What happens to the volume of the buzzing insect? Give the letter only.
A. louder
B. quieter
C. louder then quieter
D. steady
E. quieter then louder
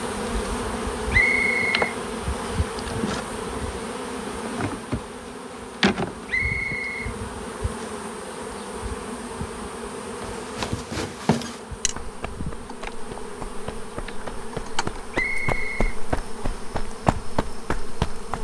B.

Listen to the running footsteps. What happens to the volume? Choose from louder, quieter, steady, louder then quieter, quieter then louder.
quieter then louder.